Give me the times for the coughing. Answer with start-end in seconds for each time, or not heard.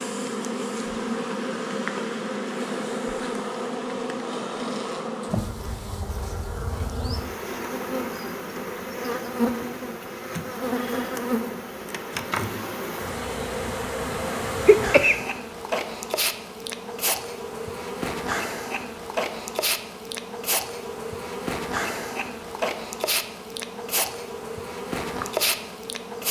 14.7-15.2.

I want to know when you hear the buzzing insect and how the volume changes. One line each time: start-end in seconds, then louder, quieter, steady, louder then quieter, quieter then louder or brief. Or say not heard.
0.0-26.2 steady.